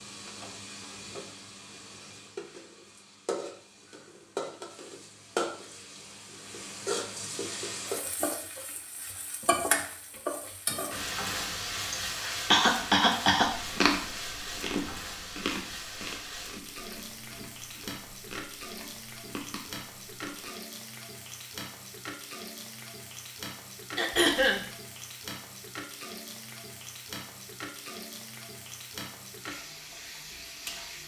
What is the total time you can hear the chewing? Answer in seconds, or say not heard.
7 s.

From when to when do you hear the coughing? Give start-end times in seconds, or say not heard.
11.8-13.6, 23.9-24.6.